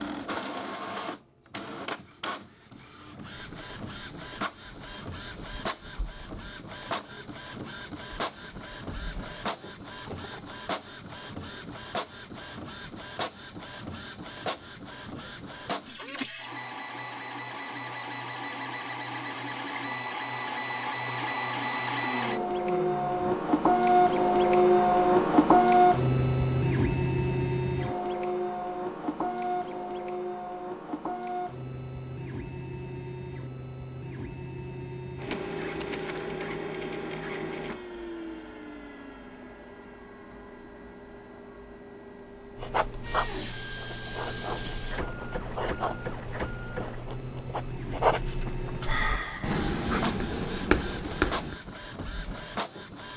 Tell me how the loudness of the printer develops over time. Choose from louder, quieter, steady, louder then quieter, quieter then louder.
louder then quieter.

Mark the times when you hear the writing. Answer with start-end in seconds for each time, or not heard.
42.5-51.5.